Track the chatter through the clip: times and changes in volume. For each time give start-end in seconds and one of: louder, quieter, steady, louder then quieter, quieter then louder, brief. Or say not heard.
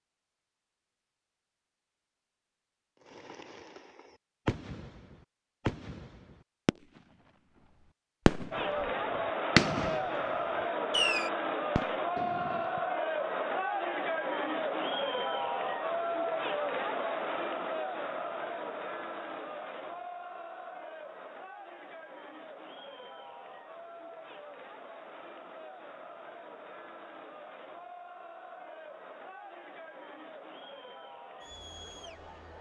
8.5-32.5 quieter.